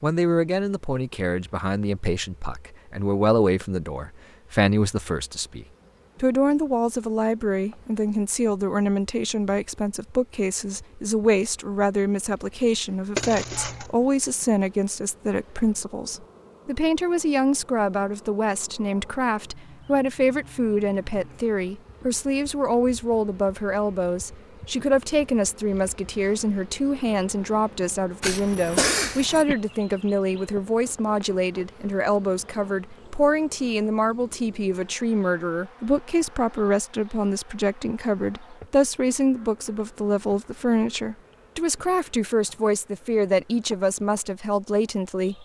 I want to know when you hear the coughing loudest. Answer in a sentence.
The loudest moment of the coughing is at 29 seconds.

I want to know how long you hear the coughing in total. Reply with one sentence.
You can hear the coughing for 2 seconds altogether.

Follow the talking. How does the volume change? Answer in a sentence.
The loudness of the talking stays about the same.